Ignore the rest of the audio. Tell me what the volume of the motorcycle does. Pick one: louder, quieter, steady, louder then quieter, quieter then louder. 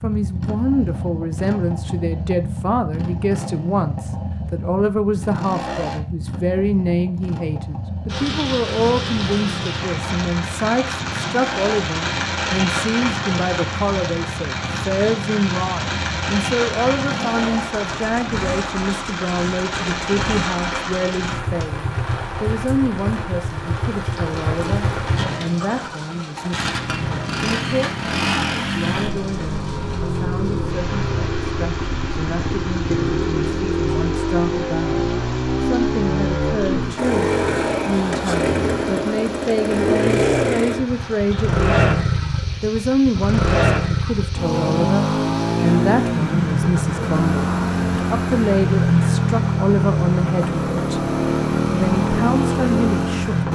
louder.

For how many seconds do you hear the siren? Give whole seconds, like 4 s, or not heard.
not heard.